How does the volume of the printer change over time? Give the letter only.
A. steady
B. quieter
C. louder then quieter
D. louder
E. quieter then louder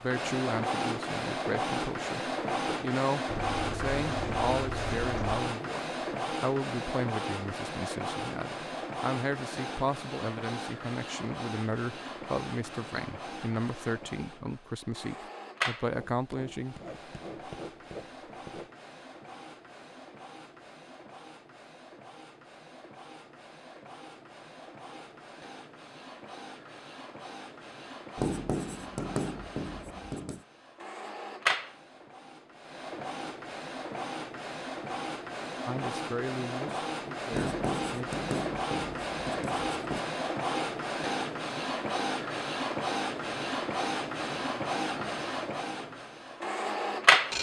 E.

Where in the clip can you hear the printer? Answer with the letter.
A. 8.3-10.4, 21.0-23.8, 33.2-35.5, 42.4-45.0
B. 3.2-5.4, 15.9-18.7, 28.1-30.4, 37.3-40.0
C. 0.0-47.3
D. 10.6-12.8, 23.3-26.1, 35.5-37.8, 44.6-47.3
C.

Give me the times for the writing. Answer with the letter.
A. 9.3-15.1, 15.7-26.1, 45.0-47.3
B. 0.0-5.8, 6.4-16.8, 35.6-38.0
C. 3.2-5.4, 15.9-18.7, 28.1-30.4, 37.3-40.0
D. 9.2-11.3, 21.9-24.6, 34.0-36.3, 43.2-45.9
C.